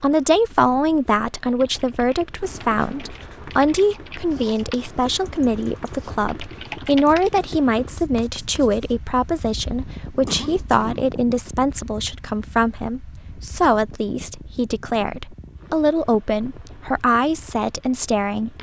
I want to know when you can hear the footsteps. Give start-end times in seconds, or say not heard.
not heard.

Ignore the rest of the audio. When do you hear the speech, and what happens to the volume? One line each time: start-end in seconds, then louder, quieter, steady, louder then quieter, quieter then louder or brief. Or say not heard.
0.0-18.5 steady.